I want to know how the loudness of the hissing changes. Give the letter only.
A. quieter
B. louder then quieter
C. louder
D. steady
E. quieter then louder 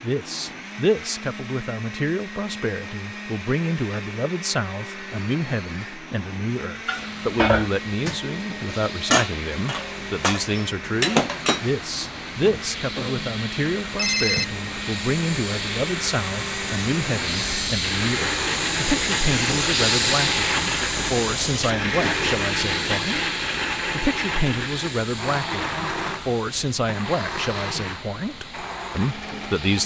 B.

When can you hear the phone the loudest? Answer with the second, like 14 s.
14 s.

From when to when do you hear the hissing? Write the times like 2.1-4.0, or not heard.
6.9-29.8.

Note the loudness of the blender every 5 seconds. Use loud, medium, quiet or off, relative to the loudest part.
medium, medium, medium, loud, loud, medium.